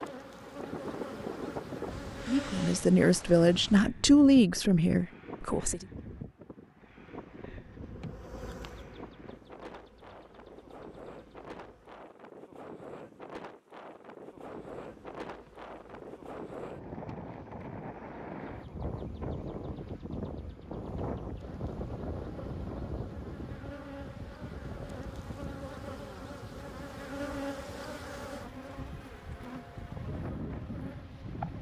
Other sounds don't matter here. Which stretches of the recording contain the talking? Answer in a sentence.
The talking can be heard from 2.2 to 5.8 s.